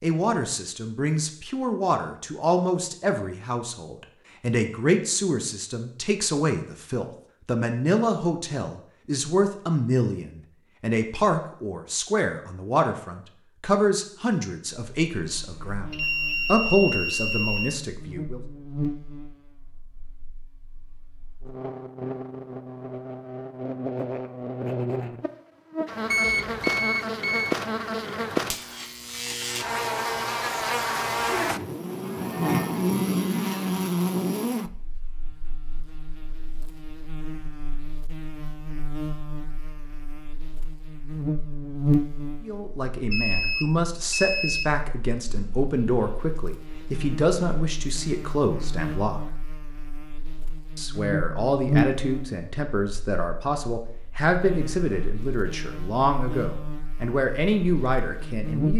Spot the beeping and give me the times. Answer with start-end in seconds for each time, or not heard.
15.9-17.8, 26.1-27.6, 43.1-44.7.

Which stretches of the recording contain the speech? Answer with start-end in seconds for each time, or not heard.
0.0-18.4, 42.4-49.3, 50.8-58.7.